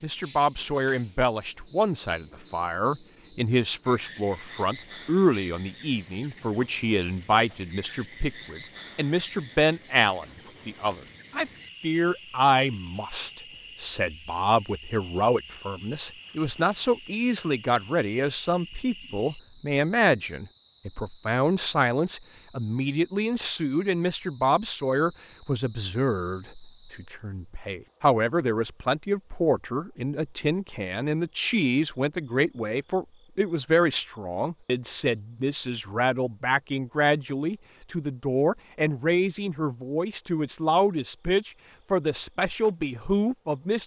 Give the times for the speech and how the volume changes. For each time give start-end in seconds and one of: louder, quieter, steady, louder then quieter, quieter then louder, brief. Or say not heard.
0.0-43.8 steady.